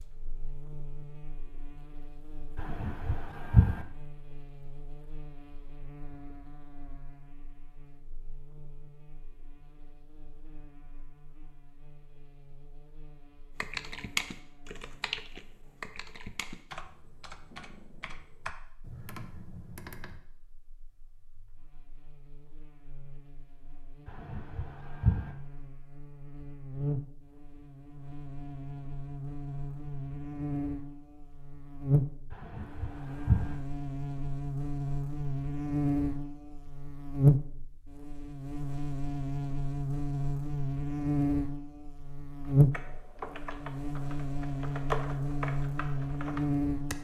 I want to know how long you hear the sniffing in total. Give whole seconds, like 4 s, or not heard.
4 s.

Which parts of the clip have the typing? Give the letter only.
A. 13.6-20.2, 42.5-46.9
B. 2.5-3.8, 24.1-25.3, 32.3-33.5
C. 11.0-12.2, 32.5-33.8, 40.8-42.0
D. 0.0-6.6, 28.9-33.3
A.